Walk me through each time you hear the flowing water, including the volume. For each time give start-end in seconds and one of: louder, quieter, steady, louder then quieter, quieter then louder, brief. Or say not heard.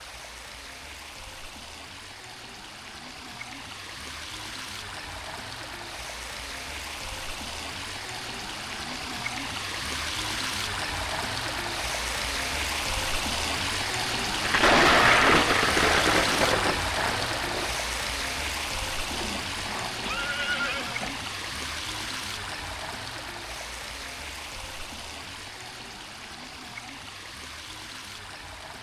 0.0-28.7 louder then quieter.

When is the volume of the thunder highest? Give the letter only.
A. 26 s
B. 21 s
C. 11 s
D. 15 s
D.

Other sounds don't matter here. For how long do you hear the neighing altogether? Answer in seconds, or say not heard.
2 s.